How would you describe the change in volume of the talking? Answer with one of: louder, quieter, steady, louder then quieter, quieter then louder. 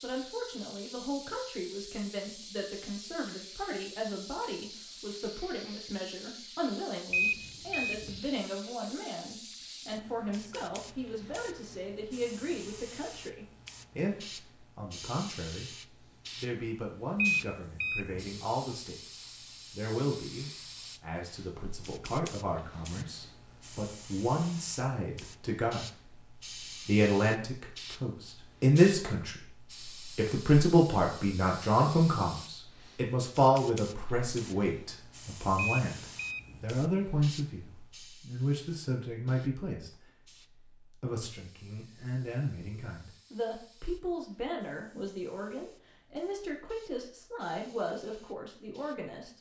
louder then quieter.